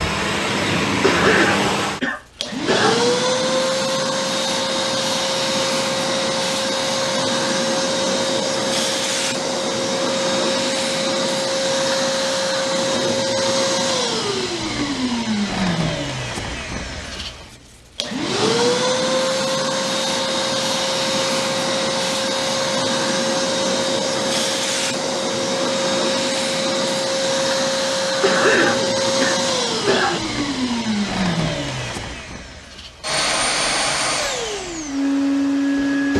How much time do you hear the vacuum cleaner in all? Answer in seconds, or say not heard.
36 s.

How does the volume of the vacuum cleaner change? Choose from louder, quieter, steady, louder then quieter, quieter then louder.
steady.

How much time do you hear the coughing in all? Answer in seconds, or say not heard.
4 s.